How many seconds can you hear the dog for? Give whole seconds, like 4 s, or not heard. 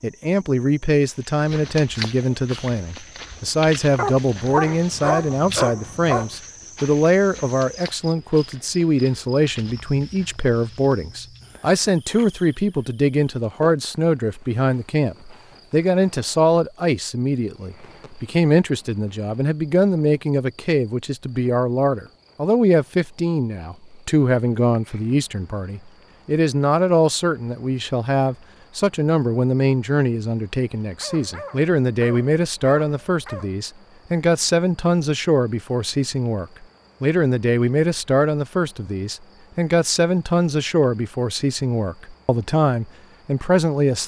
5 s.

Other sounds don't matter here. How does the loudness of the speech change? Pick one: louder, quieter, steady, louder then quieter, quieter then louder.
steady.